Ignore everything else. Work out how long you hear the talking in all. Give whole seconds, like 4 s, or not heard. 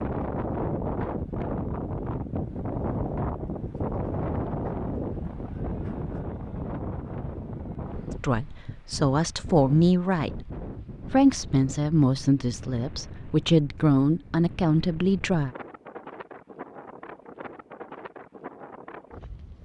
7 s.